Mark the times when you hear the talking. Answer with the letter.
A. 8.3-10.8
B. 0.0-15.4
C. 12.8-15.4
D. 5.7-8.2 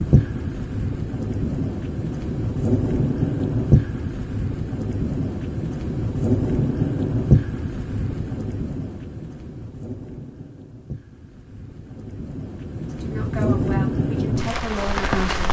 C.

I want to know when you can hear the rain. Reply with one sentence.
You can hear the rain from 0.0 to 15.4 s.